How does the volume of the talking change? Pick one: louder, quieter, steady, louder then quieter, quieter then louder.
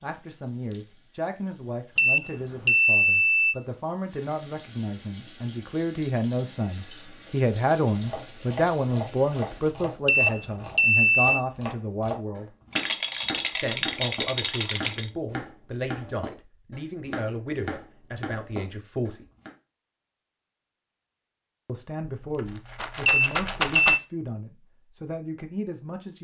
louder then quieter.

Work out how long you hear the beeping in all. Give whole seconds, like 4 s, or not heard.
4 s.